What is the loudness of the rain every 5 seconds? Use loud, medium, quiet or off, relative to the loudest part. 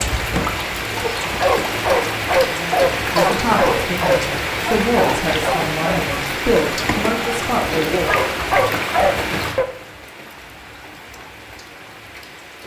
loud, loud, quiet.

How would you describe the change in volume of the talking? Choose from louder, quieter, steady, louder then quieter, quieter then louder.
steady.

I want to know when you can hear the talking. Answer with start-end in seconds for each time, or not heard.
2.5-8.2.